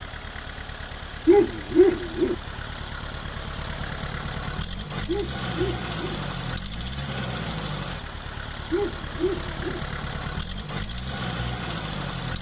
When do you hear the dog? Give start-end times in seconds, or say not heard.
1.2-2.4, 5.0-6.2, 8.7-9.8.